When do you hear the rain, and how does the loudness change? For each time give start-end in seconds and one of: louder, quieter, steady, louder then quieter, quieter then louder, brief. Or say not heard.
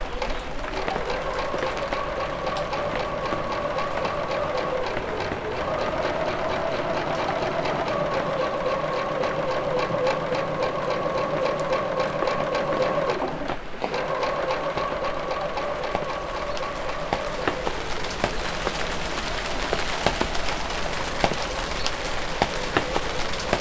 0.0-23.5 louder.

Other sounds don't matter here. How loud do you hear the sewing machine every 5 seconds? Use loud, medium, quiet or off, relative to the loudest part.
loud, loud, loud, medium, medium.